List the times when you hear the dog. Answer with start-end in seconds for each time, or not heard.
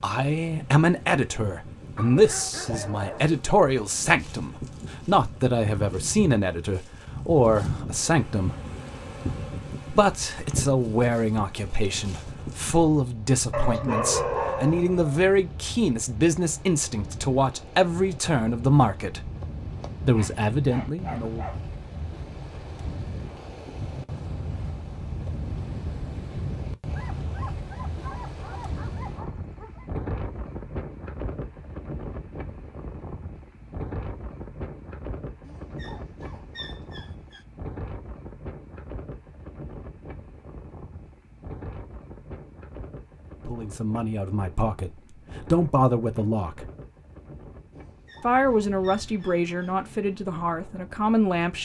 1.9-3.5, 13.5-15.2, 18.9-21.6, 26.9-29.9, 35.4-37.5, 47.7-49.8.